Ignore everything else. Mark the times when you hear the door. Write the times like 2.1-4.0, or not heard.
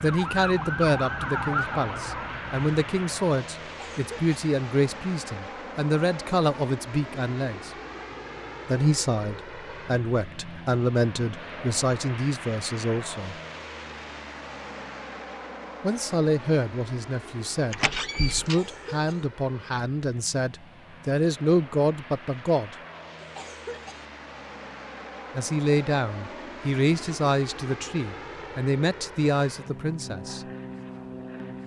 17.7-18.6.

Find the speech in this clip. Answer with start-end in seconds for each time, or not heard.
0.0-7.7, 8.7-13.3, 15.8-22.8, 25.4-30.4.